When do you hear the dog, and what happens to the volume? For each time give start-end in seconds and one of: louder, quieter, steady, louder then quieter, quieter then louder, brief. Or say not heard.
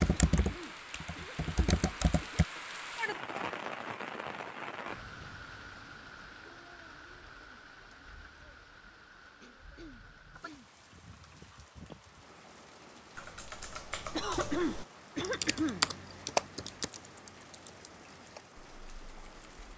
not heard.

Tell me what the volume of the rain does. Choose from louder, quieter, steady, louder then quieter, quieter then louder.
quieter.